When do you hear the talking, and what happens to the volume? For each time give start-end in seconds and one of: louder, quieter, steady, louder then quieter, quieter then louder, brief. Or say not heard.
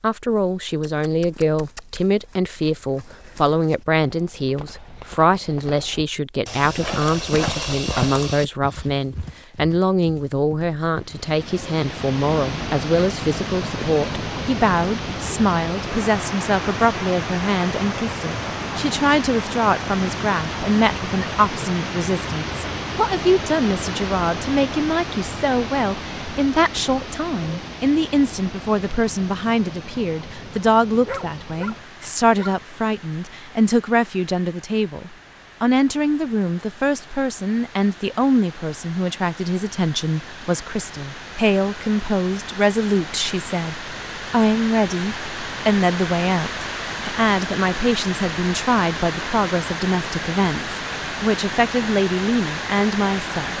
0.0-53.5 steady.